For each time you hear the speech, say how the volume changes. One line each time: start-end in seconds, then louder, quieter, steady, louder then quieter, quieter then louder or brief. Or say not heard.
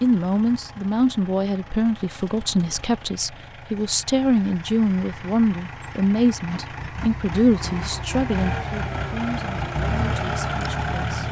0.0-11.2 quieter.